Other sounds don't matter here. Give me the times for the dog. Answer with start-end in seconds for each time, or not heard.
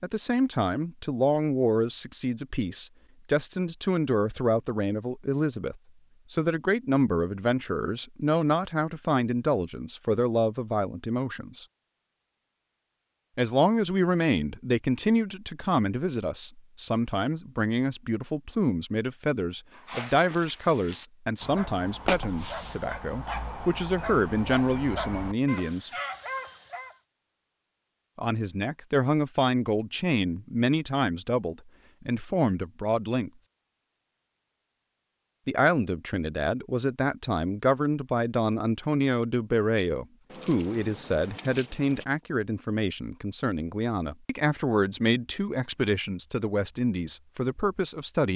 19.8-26.9.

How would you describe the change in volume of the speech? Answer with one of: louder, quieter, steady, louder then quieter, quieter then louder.
steady.